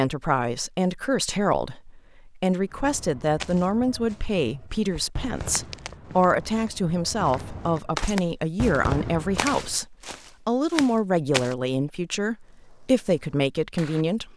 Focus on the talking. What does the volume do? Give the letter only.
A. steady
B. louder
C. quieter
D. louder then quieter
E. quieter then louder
A.